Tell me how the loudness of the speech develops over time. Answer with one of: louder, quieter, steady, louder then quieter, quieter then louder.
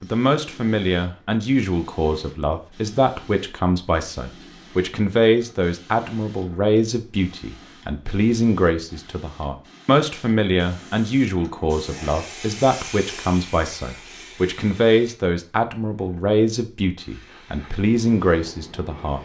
steady.